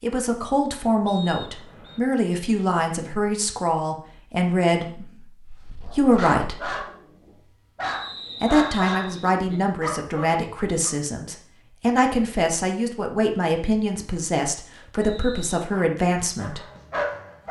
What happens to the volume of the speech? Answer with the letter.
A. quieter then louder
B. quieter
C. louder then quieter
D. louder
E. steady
E.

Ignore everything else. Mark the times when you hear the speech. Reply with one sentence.
You can hear the speech from 0.0 to 6.7 s and from 8.4 to 16.6 s.